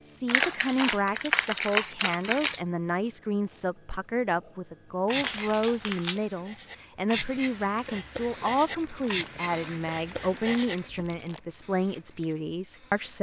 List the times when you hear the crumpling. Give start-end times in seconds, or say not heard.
0.2-2.6, 5.2-6.2, 9.0-11.4.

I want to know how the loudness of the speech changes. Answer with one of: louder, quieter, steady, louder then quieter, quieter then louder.
steady.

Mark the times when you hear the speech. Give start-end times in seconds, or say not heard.
0.0-13.1.